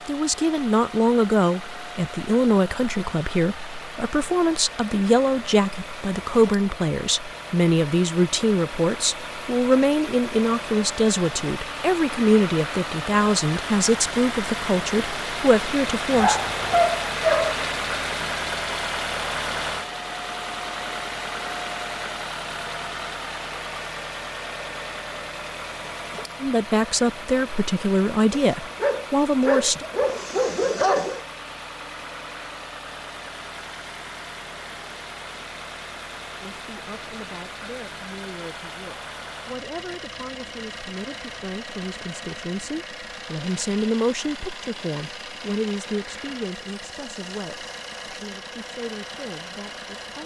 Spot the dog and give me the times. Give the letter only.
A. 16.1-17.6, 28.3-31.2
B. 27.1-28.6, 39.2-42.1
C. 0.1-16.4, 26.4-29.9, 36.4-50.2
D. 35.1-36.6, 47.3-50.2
A.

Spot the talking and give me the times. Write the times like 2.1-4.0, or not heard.
0.1-16.4, 26.4-29.9, 36.4-50.2.